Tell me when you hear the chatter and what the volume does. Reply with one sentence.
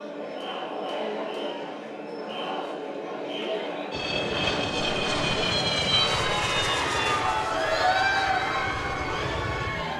The chatter can be heard from 0.0 to 9.9 s, getting louder.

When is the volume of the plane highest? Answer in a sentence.
The volume of the plane peaks at 6 seconds.